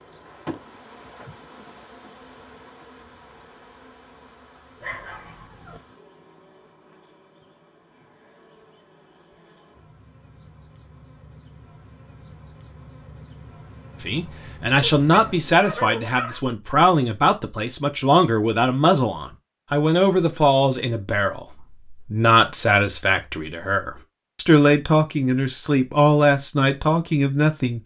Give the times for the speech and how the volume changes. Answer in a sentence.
You can hear the speech from 14.0 to 27.8 s, at a steady volume.